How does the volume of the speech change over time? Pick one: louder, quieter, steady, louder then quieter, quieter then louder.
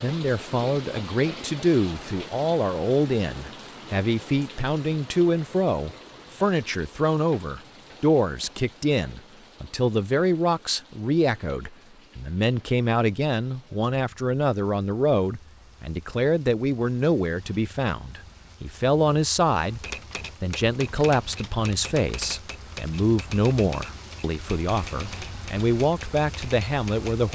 steady.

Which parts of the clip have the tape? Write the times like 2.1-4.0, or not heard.
not heard.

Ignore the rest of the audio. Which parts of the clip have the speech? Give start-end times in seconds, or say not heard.
0.0-27.3.